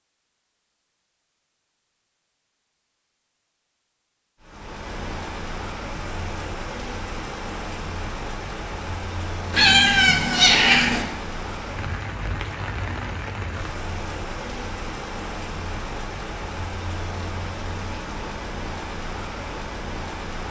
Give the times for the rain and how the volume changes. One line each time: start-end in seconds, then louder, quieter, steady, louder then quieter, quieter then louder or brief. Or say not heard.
4.4-20.4 steady.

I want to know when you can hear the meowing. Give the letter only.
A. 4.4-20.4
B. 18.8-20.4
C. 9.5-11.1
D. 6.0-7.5
C.